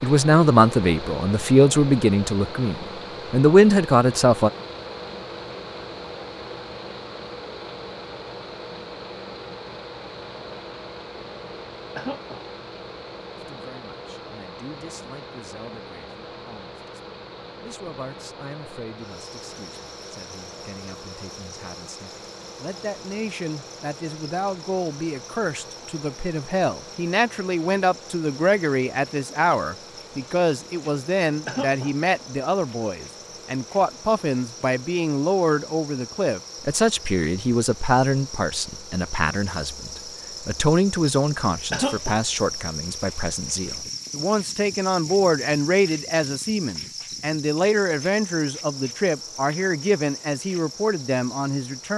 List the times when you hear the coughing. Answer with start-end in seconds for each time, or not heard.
11.9-12.4, 31.4-31.9, 41.7-42.2.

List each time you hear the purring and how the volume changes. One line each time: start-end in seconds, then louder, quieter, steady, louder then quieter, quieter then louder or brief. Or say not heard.
not heard.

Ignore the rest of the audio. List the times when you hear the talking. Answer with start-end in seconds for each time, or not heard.
0.0-4.5, 13.3-51.9.